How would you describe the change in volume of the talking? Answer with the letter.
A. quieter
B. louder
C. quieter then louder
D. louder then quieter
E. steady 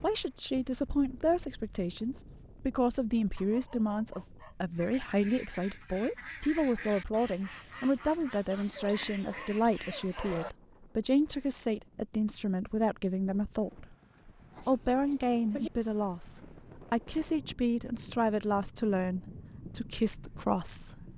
E.